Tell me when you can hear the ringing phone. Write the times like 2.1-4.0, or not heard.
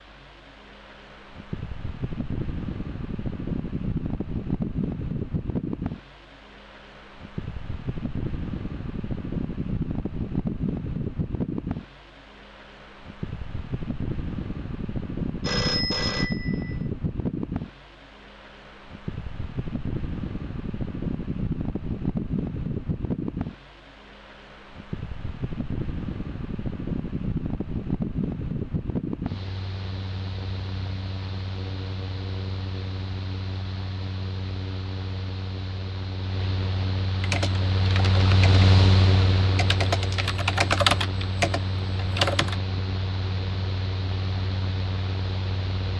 15.4-16.8.